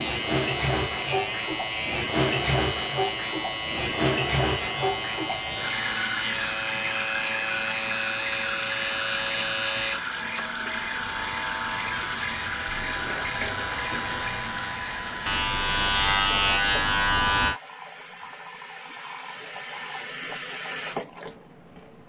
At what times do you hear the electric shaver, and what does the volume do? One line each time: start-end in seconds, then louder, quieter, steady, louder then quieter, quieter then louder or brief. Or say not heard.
0.0-17.6 louder.